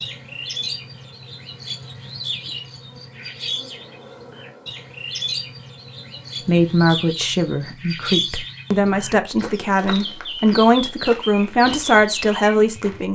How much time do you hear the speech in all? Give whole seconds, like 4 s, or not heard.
7 s.